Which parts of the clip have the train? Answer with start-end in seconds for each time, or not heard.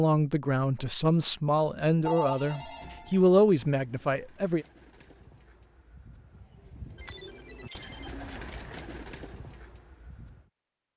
not heard.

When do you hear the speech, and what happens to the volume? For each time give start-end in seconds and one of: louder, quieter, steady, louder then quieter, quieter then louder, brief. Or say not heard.
0.0-4.7 louder then quieter.